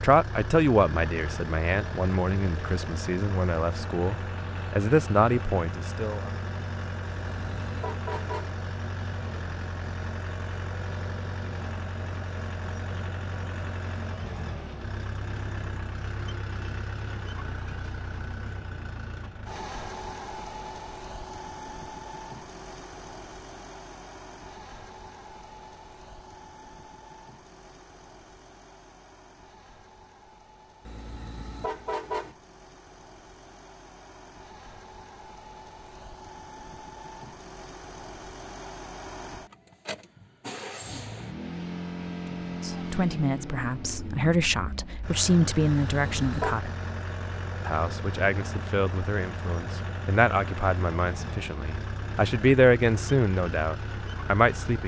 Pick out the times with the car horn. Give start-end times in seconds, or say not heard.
7.2-8.5, 30.9-32.4, 45.8-46.6.